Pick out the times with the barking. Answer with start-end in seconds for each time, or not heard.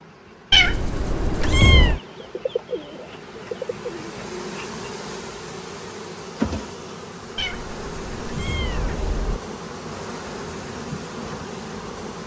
not heard.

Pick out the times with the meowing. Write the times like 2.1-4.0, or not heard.
0.5-2.0, 7.3-9.4.